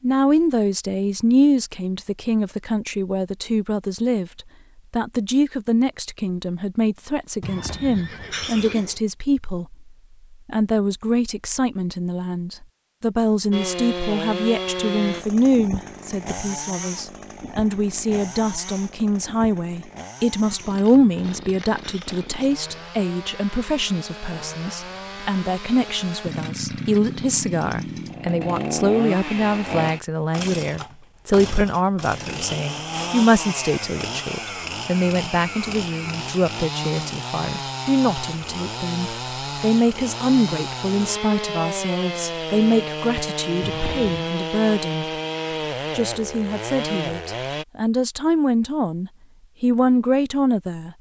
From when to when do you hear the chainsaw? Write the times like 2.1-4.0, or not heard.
13.5-47.6.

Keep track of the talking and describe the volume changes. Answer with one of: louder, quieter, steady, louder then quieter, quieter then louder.
steady.